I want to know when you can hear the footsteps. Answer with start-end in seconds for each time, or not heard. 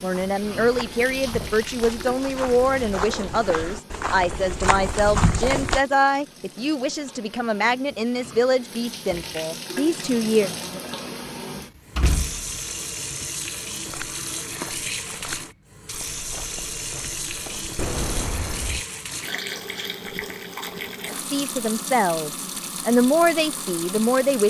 0.1-5.8, 13.8-17.8.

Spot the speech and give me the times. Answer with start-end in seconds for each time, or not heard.
0.0-10.5, 21.1-24.4.